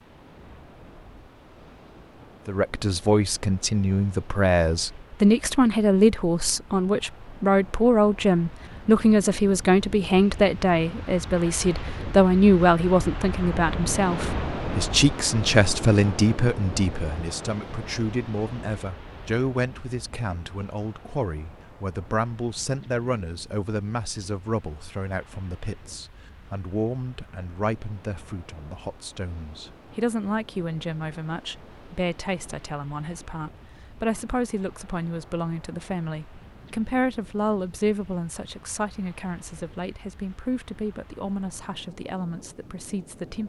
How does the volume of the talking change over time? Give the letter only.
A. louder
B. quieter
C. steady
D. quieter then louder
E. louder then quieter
B.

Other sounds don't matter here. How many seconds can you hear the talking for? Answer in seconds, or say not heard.
41 s.